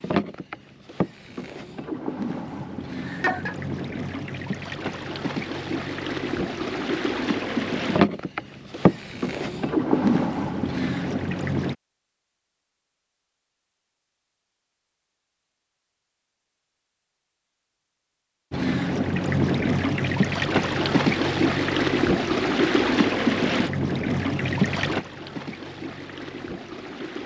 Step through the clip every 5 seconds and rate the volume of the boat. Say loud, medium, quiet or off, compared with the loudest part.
medium, loud, loud, loud, loud, quiet.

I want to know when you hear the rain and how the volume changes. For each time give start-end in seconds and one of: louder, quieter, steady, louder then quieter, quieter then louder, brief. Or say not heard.
not heard.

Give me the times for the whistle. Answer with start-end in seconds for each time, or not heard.
not heard.